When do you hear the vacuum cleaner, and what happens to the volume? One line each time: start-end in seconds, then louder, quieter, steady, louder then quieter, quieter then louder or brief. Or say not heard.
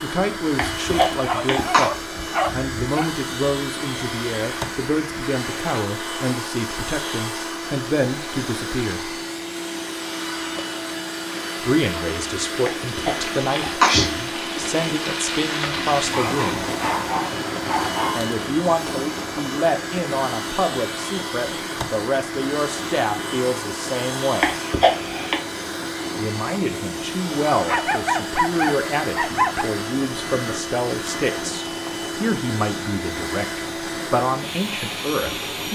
0.0-35.6 steady.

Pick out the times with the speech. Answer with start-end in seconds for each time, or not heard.
0.0-9.1, 11.6-16.6, 18.1-24.5, 26.1-35.6.